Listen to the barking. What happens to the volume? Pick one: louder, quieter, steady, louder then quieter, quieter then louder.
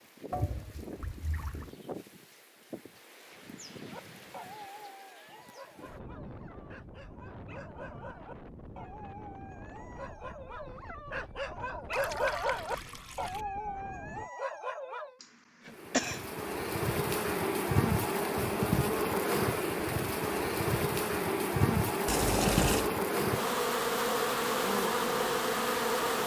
louder.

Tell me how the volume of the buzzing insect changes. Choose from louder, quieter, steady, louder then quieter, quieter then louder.
steady.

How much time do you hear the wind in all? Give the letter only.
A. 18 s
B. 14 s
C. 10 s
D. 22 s
B.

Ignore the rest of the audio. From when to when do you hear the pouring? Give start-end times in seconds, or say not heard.
0.3-1.7, 11.9-13.4, 22.1-22.9.